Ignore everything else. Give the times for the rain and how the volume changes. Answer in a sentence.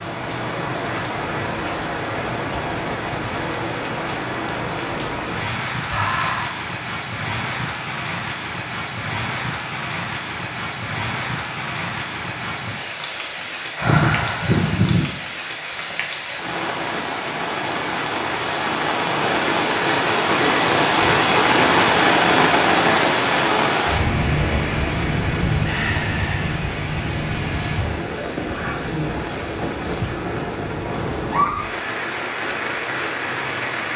You can hear the rain from 0.0 to 33.9 s, getting louder then quieter.